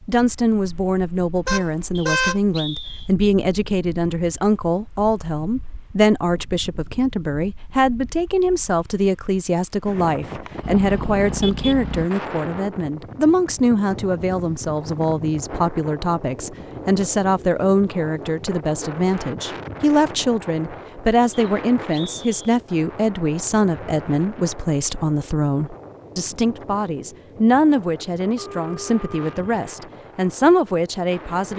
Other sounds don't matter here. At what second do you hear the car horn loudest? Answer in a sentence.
The volume of the car horn peaks at 2 seconds.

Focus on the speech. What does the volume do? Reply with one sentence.
The volume of the speech stays about the same.